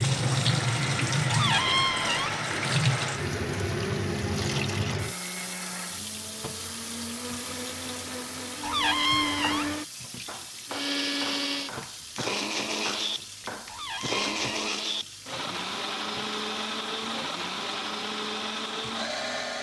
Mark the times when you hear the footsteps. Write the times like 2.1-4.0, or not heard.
not heard.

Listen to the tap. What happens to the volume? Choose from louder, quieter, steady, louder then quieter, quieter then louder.
quieter.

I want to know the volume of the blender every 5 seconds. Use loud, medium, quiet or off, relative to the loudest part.
loud, medium, loud, loud.